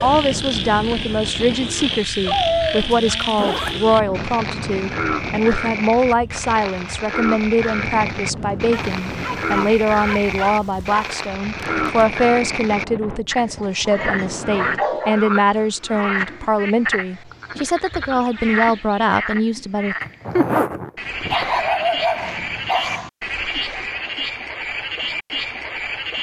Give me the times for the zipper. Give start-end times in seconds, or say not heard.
2.3-3.8, 20.0-21.4.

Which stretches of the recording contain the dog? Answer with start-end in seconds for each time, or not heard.
2.2-3.4, 8.7-11.2, 13.6-15.2, 21.3-23.1.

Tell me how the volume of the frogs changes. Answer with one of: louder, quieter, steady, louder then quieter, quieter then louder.
steady.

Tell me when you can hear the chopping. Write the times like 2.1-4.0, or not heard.
not heard.